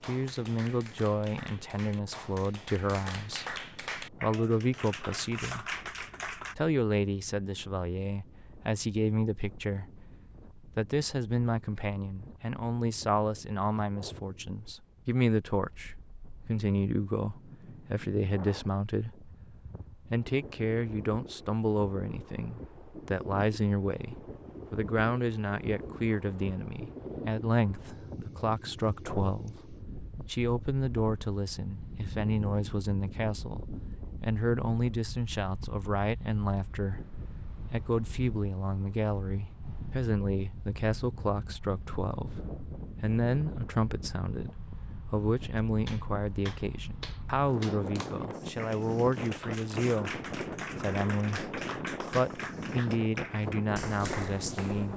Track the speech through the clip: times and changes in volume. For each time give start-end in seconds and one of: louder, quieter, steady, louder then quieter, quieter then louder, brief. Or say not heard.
0.0-54.9 steady.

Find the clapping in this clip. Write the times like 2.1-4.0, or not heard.
0.0-6.5, 45.5-54.9.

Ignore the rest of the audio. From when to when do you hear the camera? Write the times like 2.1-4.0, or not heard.
not heard.